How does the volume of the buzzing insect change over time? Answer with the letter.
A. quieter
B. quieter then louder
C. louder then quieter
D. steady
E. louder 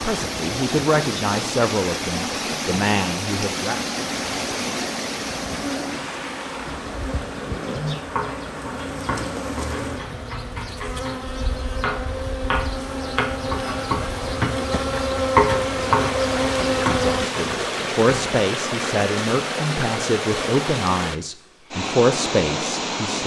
E.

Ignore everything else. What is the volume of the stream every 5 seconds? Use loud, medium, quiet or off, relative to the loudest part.
loud, medium, medium, loud, loud.